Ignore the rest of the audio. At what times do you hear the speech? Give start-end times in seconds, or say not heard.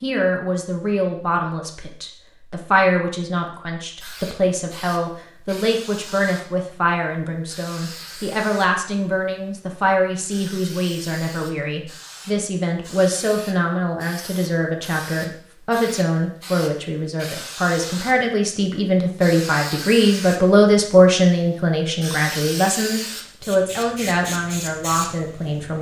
0.0-25.7.